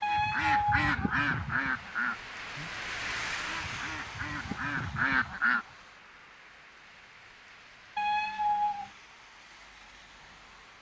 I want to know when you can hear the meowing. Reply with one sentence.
The meowing can be heard from 0.0 to 0.9 s and from 8.0 to 8.9 s.